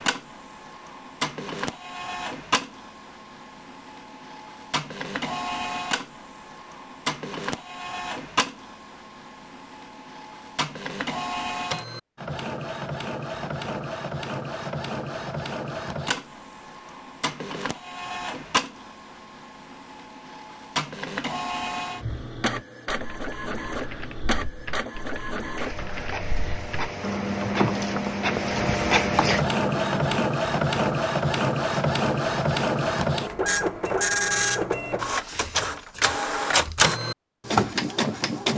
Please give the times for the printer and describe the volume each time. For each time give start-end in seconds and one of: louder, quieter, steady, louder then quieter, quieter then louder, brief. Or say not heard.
0.0-38.5 louder.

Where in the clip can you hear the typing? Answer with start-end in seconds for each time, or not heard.
22.0-30.3.